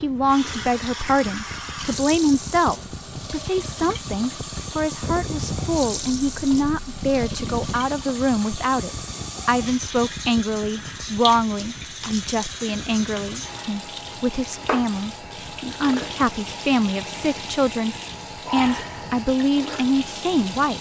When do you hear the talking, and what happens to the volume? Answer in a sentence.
You can hear the talking from 0.0 to 20.7 s, at a steady volume.